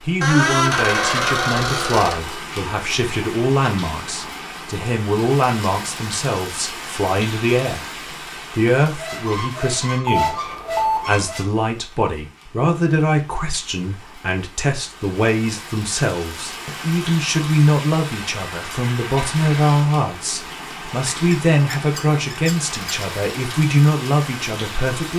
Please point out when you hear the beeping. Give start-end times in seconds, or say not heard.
10.1-11.2.